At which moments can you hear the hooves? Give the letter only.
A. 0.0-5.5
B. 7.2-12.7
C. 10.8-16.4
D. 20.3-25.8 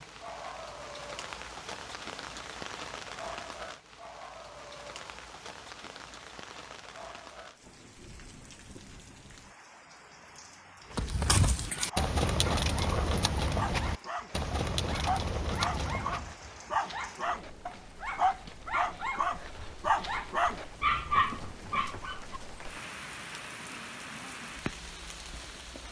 C.